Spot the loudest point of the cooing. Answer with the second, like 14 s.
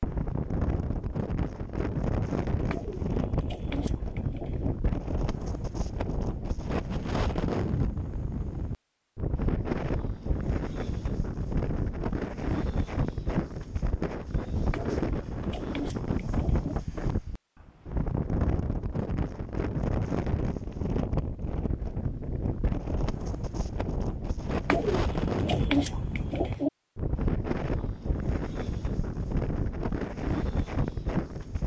26 s.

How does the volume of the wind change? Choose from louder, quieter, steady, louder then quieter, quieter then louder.
steady.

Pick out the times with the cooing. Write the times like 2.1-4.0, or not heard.
2.7-4.7, 14.7-16.8, 24.6-26.7.